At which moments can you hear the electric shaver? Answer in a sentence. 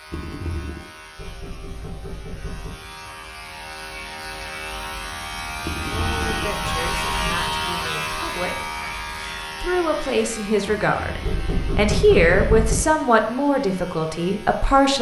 The electric shaver can be heard from 0.0 to 14.9 s.